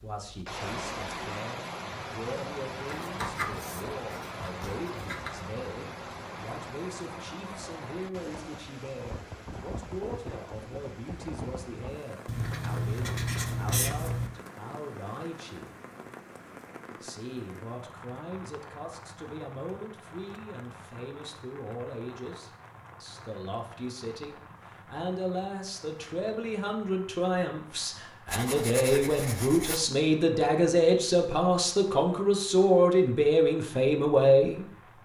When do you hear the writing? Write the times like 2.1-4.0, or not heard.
2.9-5.3, 12.2-14.3, 28.2-29.9.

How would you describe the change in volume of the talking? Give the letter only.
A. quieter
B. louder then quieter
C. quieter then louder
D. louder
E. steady
D.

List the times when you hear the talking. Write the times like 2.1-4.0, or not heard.
0.0-15.7, 17.0-34.6.